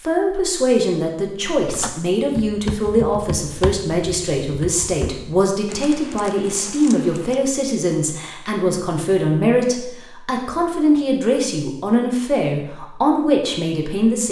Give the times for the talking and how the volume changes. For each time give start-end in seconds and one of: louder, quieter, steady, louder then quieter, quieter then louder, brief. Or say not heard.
0.0-14.2 steady.